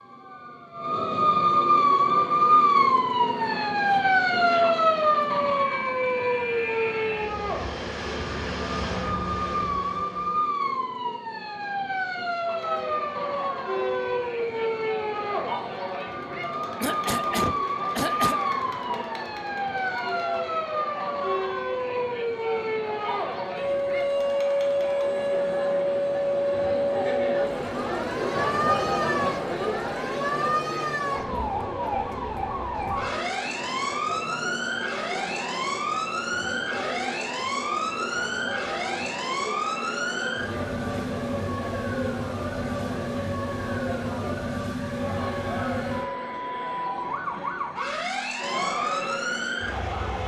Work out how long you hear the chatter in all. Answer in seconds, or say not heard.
38 s.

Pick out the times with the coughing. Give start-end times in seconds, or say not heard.
16.8-18.5.